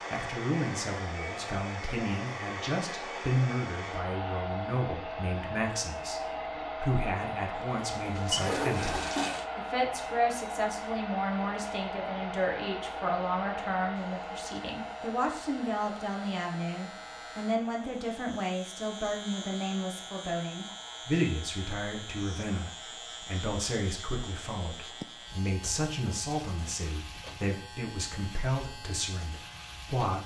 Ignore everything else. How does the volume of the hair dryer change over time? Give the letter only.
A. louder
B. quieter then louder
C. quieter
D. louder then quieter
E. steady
C.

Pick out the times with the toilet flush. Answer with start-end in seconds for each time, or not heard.
8.0-9.4.